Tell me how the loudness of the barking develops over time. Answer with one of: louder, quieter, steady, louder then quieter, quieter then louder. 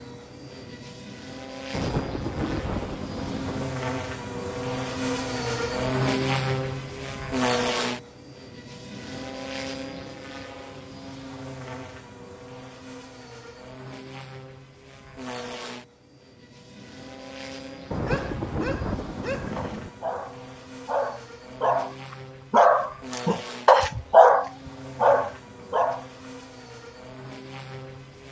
louder.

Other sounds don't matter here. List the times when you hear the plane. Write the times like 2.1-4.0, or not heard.
0.0-28.2.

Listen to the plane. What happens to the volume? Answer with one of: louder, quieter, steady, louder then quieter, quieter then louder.
quieter.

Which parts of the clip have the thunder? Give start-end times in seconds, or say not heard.
1.7-3.8, 17.9-19.9.